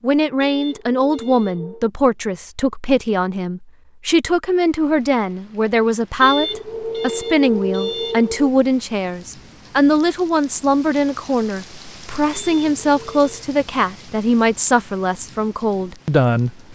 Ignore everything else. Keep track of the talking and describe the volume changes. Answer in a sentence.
The loudness of the talking stays about the same.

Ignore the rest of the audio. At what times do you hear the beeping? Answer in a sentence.
The beeping can be heard from 0.4 to 1.9 s, from 6.2 to 8.5 s and from 12.3 to 13.4 s.